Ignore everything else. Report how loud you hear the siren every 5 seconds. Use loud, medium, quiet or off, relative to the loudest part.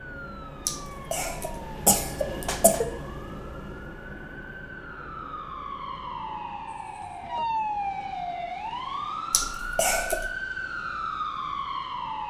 quiet, loud, loud.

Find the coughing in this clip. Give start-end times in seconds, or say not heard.
0.7-2.9, 9.3-10.3.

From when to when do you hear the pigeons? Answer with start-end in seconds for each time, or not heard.
not heard.